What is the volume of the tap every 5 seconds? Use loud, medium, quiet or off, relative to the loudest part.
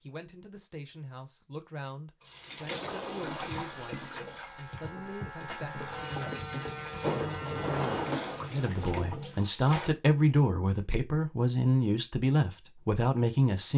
loud, loud, off.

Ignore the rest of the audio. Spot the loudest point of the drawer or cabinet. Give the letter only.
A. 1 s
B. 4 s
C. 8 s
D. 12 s
C.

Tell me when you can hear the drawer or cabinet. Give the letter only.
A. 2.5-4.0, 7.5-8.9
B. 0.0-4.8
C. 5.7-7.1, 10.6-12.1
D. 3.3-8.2
A.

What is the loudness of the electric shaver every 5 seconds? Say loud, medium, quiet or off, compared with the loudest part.
medium, loud, off.